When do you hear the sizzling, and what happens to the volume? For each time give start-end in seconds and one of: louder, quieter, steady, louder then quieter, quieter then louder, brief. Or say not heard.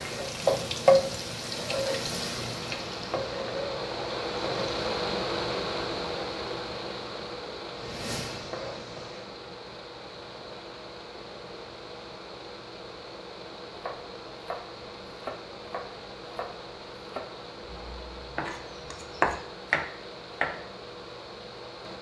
0.0-5.0 quieter
7.7-9.3 brief.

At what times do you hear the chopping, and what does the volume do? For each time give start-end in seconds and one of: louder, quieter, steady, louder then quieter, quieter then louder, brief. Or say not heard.
13.7-20.6 louder.